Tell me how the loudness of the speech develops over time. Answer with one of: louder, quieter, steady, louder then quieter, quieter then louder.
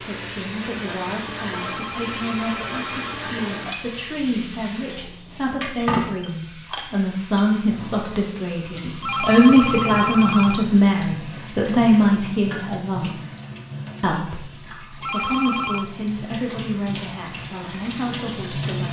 louder then quieter.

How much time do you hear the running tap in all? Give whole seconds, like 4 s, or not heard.
19 s.